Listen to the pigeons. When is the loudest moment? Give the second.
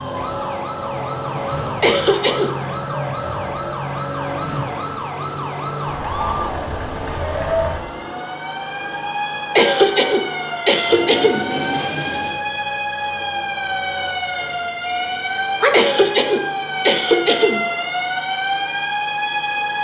12 s.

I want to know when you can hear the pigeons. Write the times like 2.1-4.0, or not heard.
6.2-8.2, 10.8-12.4.